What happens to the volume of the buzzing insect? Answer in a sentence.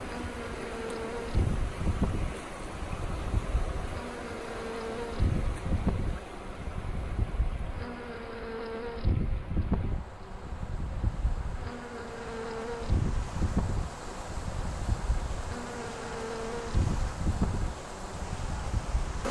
The loudness of the buzzing insect stays about the same.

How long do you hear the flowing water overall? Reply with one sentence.
You can hear the flowing water for 19 seconds altogether.